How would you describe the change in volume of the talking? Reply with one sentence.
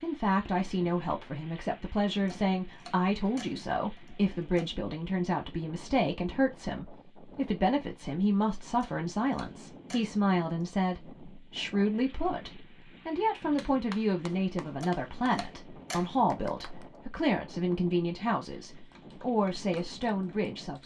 The loudness of the talking stays about the same.